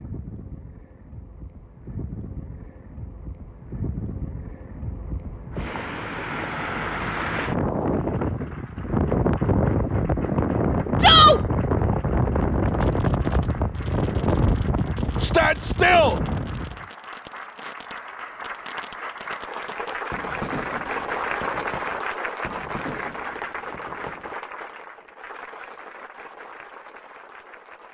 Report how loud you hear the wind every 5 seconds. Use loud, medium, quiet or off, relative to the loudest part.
quiet, loud, loud, medium, off, off.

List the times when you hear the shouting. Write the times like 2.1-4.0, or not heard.
11.0-11.4, 15.2-16.1.